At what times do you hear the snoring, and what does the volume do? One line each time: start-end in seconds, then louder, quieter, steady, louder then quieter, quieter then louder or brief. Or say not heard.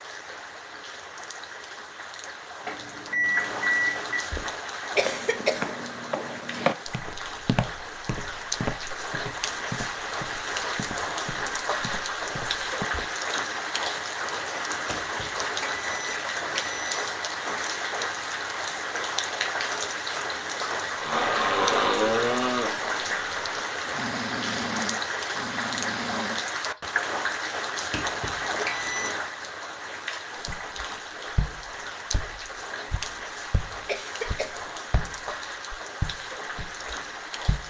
20.9-26.8 quieter.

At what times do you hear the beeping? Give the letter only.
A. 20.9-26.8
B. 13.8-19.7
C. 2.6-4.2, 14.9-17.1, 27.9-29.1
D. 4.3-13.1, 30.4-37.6
C.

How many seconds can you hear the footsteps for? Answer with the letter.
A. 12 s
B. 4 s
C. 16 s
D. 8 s
C.